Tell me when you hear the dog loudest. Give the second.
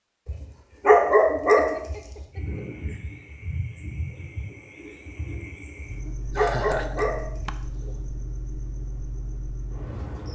1 s.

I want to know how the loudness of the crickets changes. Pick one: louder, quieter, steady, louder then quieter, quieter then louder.
steady.